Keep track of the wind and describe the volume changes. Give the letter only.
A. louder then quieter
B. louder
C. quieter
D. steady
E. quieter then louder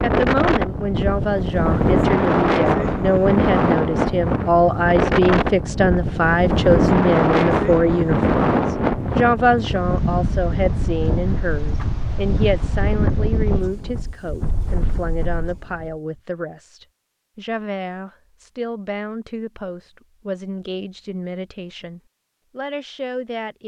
C.